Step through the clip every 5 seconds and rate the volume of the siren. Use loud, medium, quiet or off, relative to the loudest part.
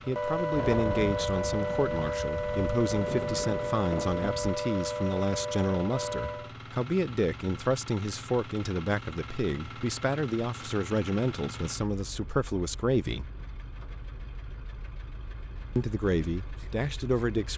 loud, loud, off, off.